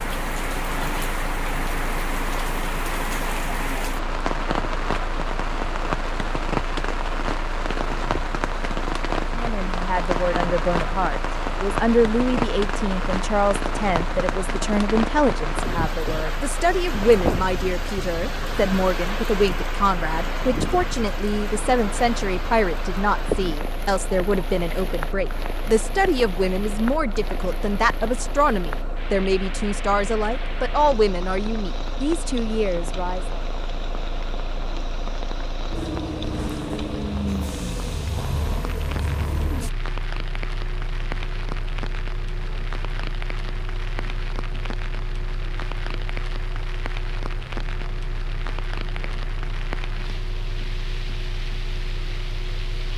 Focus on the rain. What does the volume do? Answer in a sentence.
The loudness of the rain goes down.